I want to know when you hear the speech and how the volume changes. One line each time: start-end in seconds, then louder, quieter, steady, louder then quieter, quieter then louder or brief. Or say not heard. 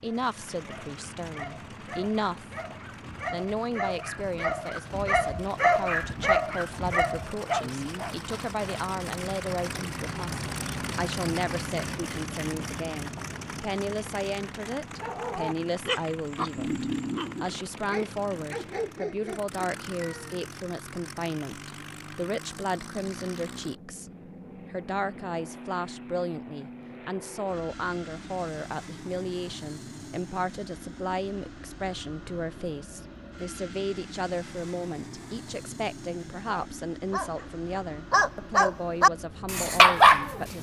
0.0-2.5 brief
3.3-24.1 steady
24.7-40.5 steady.